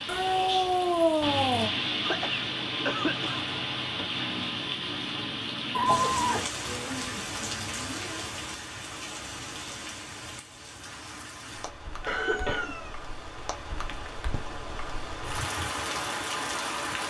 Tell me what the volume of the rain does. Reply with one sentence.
The volume of the rain goes down, then up.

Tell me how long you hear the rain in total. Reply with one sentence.
You can hear the rain for 17 seconds altogether.